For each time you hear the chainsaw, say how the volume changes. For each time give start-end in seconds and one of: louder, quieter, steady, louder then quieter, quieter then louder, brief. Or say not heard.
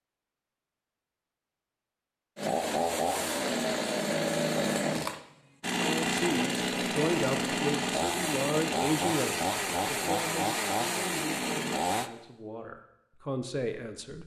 2.4-12.1 steady.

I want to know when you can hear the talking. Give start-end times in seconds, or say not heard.
5.8-14.2.